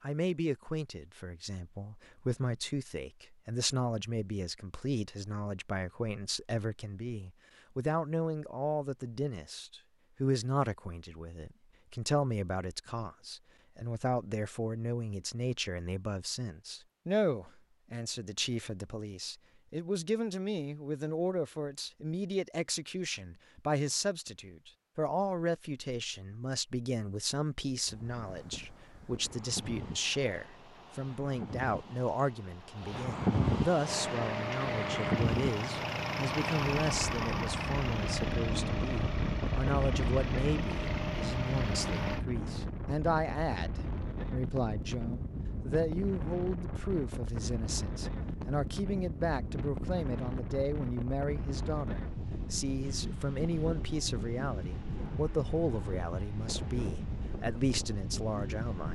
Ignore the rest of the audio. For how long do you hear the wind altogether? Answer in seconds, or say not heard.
31 s.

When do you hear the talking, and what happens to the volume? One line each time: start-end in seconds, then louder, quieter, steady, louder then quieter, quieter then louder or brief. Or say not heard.
0.0-58.9 steady.